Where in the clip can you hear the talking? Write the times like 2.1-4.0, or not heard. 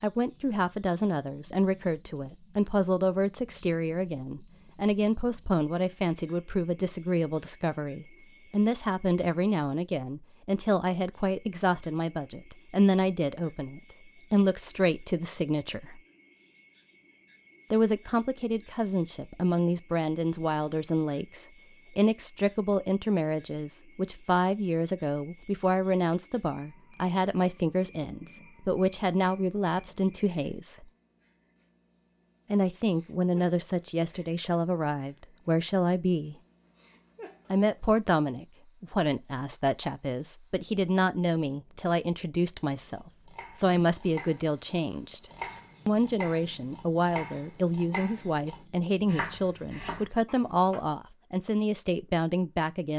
0.0-16.0, 17.7-30.9, 32.5-36.4, 37.5-45.2, 45.9-52.9.